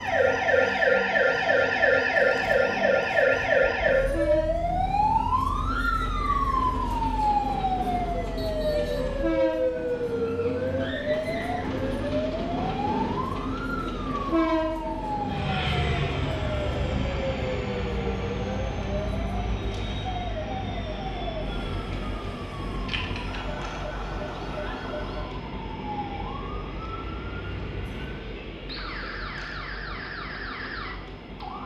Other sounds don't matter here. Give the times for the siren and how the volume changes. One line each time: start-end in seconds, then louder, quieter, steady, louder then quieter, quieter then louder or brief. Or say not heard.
0.0-31.6 quieter.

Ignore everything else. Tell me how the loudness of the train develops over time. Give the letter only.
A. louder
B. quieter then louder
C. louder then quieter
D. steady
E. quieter
C.